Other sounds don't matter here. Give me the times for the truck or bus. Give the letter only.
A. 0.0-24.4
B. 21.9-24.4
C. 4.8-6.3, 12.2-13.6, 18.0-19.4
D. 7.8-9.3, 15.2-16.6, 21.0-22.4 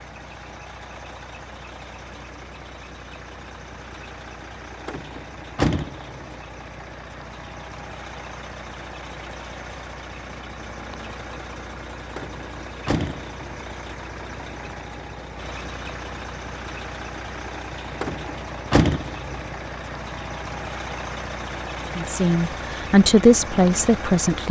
A.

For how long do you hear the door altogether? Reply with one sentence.
You can hear the door for 4 seconds altogether.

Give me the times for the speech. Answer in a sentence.
The speech can be heard from 21.9 to 24.4 s.